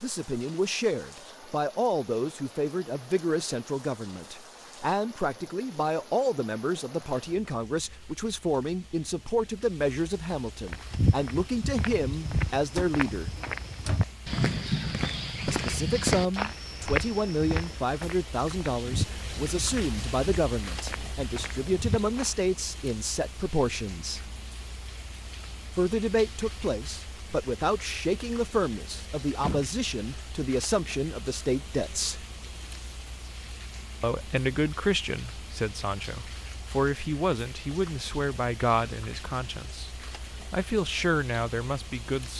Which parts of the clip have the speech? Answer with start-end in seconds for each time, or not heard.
0.0-13.3, 15.4-24.3, 25.8-32.2, 34.0-42.3.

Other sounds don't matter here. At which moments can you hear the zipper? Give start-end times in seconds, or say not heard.
not heard.